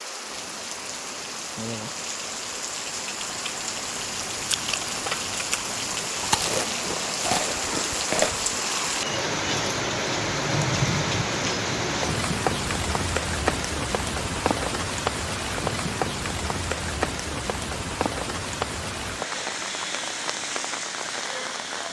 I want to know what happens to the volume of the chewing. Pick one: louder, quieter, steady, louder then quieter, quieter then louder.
louder.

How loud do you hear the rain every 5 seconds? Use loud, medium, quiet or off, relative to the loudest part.
medium, loud, loud, loud, medium.